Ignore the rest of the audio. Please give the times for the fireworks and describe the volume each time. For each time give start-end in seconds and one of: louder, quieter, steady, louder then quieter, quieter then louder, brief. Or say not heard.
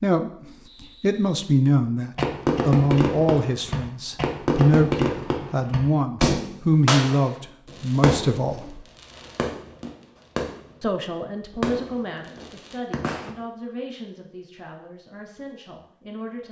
2.1-13.3 quieter.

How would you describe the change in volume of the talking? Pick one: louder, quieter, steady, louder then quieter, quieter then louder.
quieter.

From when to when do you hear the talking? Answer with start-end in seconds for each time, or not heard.
0.0-8.8, 10.8-16.4.